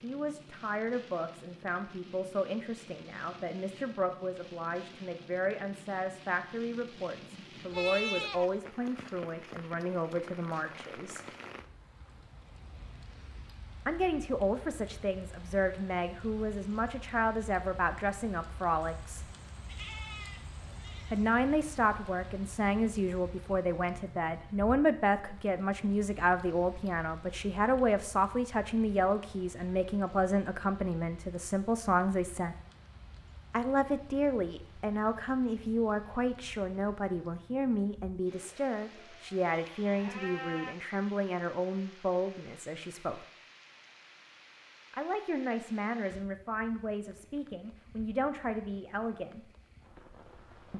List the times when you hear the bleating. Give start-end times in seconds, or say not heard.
7.7-8.6, 18.8-21.3, 38.3-40.8.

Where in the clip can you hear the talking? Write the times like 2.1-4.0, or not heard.
0.0-11.2, 13.8-19.2, 21.1-32.5, 33.5-43.2, 44.9-49.5.